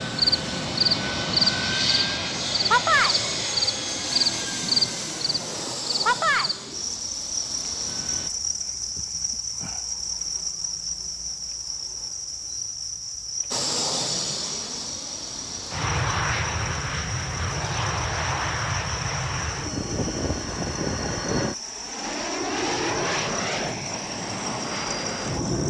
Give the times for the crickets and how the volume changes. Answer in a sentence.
You can hear the crickets from 0.0 to 25.6 s, getting quieter.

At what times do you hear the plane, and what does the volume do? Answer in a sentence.
The plane can be heard from 0.0 to 8.3 s, getting quieter; and from 13.5 to 25.6 s, at a steady volume.